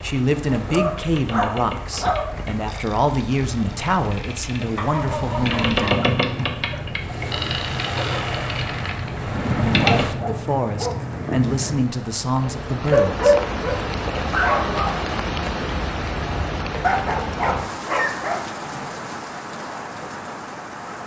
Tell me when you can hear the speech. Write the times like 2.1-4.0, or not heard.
0.0-5.9, 10.1-13.3.